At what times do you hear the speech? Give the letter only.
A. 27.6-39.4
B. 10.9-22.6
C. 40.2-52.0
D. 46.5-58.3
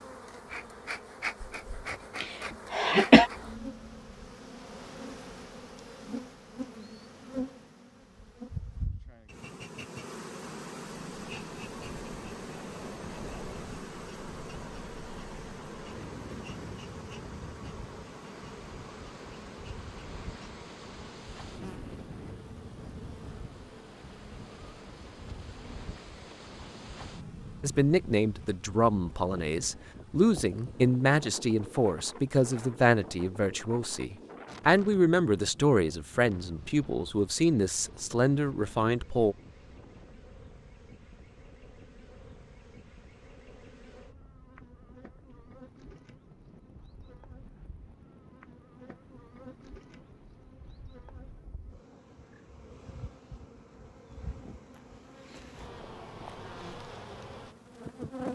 A.